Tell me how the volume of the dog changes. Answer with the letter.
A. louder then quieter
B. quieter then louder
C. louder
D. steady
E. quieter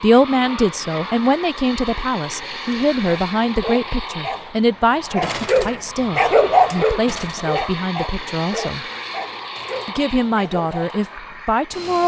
A.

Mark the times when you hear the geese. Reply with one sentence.
You can't hear the geese here.